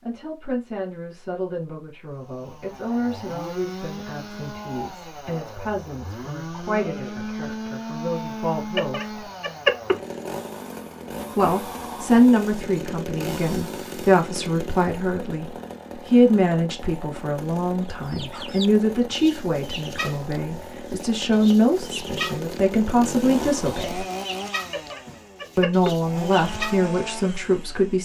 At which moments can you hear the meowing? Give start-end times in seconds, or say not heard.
8.8-9.9, 24.7-25.9.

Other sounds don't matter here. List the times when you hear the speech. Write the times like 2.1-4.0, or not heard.
0.0-9.2, 11.3-24.1, 25.6-27.9.